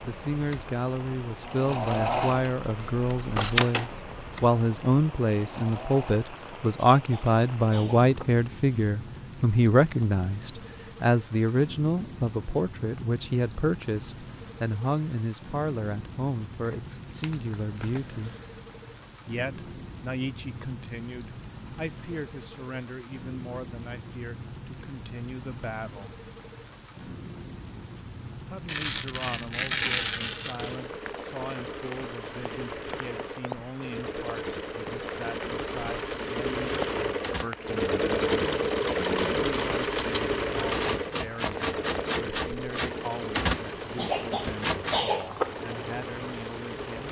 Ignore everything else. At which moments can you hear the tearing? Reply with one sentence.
You can hear the tearing from 16.6 to 18.6 s and from 28.6 to 30.8 s.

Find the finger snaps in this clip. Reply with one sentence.
The finger snaps can't be heard in this clip.